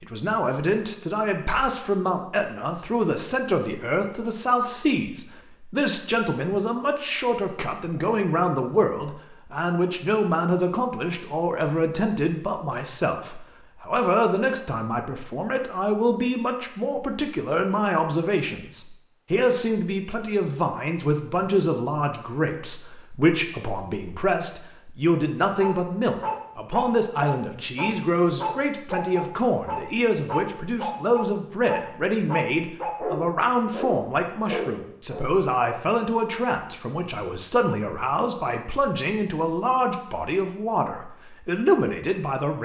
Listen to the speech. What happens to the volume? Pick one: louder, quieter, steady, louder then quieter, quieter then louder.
steady.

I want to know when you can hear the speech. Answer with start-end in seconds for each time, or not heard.
0.0-42.6.